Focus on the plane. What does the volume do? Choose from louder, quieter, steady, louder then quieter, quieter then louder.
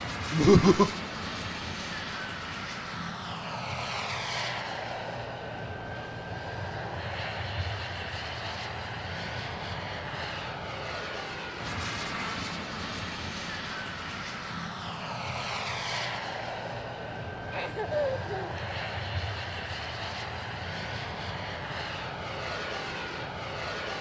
steady.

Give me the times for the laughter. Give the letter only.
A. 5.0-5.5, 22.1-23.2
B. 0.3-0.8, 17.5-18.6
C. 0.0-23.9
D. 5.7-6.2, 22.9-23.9
B.